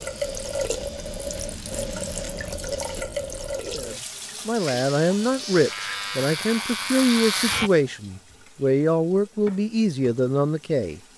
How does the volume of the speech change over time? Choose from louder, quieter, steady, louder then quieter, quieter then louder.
steady.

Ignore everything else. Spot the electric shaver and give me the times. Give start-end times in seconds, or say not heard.
0.0-3.0, 4.5-7.7.